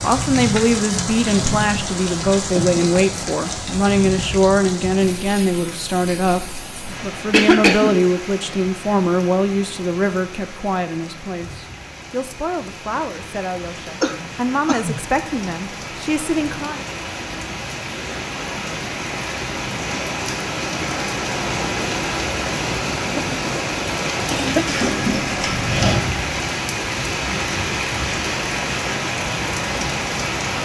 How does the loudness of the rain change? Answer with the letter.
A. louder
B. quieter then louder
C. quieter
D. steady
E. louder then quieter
B.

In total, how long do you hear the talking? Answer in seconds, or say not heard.
17 s.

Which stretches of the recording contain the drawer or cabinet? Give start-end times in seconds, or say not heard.
24.6-26.1.